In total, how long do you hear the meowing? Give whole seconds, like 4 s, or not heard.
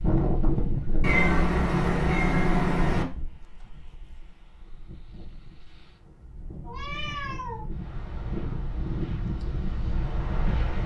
3 s.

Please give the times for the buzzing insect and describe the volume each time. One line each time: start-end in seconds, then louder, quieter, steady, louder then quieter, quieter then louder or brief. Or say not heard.
not heard.